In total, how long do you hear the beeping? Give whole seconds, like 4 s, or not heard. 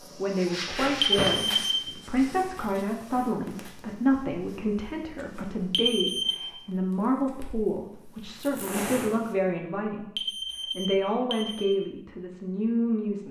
3 s.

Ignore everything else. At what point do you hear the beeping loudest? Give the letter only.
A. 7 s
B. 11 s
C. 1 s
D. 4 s
C.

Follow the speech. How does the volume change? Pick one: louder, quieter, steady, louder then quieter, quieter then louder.
steady.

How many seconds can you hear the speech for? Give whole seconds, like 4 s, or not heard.
13 s.